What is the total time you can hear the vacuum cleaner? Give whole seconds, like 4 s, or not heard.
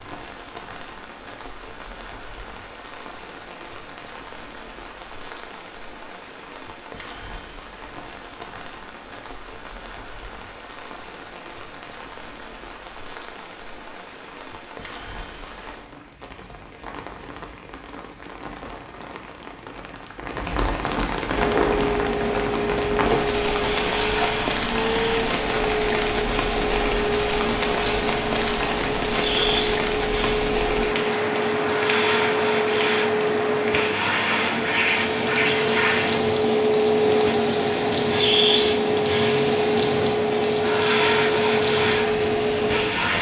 22 s.